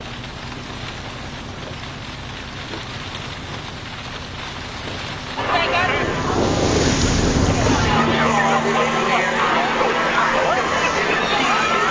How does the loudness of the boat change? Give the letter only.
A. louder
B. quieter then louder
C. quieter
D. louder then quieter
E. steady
D.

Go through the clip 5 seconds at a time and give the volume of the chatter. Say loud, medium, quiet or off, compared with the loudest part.
off, loud, loud.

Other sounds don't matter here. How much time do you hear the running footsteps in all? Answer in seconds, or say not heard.
not heard.